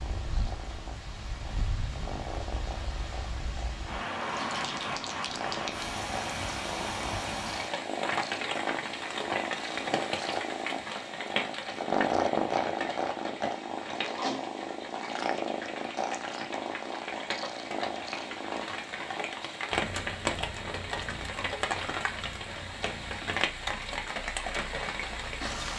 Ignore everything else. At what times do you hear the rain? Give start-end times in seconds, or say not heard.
0.0-25.7.